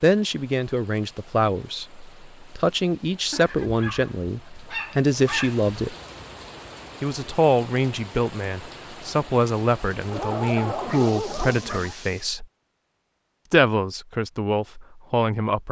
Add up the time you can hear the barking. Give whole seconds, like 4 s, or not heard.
4 s.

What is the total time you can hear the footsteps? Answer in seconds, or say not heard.
not heard.